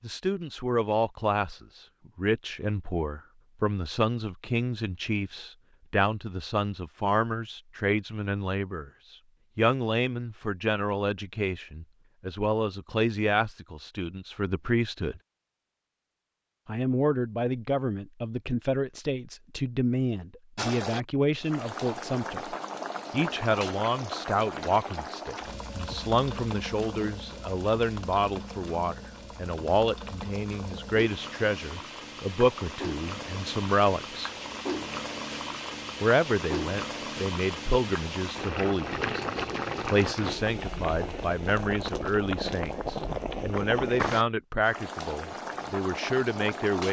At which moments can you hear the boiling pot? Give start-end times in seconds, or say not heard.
20.6-46.8.